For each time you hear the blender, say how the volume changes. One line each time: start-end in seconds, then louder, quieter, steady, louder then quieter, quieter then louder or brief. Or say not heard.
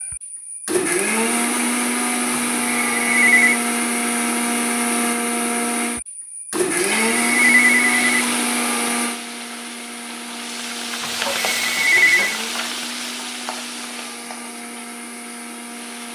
0.0-16.1 quieter.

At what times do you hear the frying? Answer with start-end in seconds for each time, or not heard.
6.8-16.1.